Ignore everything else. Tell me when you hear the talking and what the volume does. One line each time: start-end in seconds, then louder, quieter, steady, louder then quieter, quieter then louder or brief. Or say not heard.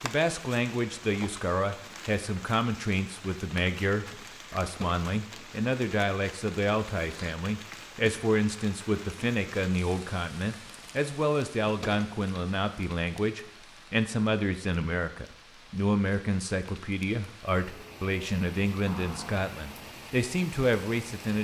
0.0-21.4 steady.